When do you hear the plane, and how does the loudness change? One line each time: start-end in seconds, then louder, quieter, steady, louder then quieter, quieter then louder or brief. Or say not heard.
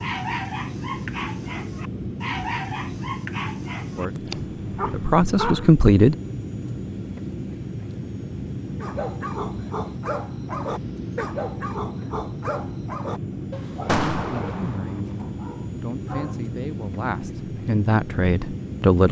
0.0-19.0 steady.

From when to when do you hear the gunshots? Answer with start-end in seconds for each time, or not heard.
13.8-15.2.